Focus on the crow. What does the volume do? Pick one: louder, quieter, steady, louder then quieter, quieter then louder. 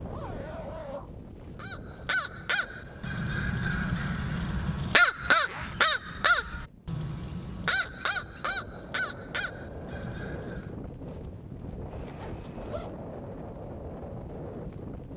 louder then quieter.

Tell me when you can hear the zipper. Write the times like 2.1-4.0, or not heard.
0.0-1.1, 5.3-5.8, 11.9-12.9.